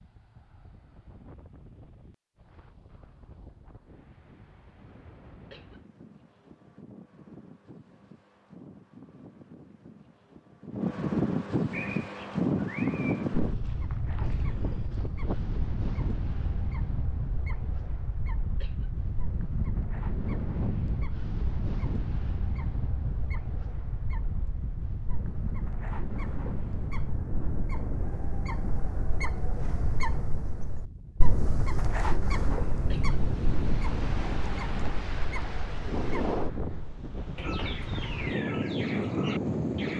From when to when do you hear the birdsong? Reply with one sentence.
You can hear the birdsong from 11.7 to 39.9 s.